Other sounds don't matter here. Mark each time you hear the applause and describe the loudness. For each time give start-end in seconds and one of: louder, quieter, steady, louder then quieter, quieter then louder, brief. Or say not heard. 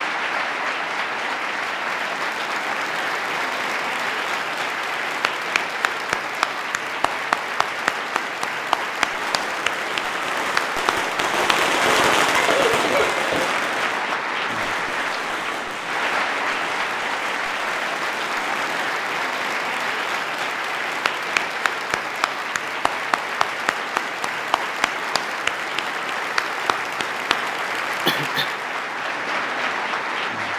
0.0-30.5 steady.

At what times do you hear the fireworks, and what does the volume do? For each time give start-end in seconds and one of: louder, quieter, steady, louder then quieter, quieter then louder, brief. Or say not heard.
9.1-18.8 louder then quieter.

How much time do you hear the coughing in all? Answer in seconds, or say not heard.
2 s.